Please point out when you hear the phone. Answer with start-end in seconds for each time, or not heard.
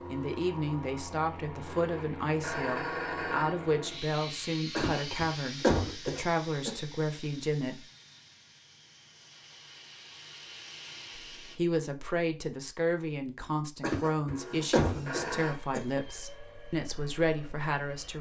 1.7-3.5, 14.3-15.6.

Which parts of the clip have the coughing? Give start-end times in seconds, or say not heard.
4.8-6.7, 13.8-15.8.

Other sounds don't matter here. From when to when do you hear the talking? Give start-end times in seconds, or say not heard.
0.1-7.8, 11.3-18.1.